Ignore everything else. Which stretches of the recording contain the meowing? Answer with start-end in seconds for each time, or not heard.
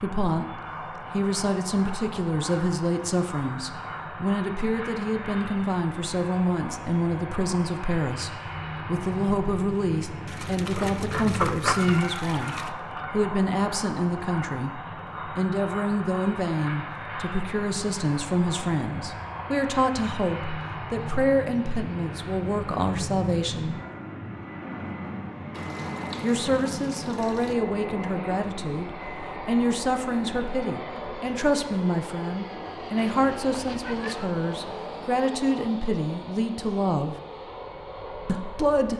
10.8-13.2, 33.0-34.8.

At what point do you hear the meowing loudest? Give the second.
12 s.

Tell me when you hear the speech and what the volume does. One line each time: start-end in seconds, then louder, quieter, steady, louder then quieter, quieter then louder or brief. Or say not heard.
0.0-23.8 steady
26.2-37.1 steady
38.2-38.9 brief.